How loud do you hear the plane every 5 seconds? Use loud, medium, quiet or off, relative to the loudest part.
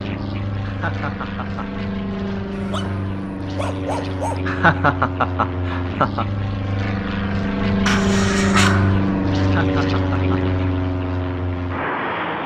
medium, loud, loud.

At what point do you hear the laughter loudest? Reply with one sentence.
The loudest moment of the laughter is at 5 seconds.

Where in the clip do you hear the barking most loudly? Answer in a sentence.
The volume of the barking peaks at 9 seconds.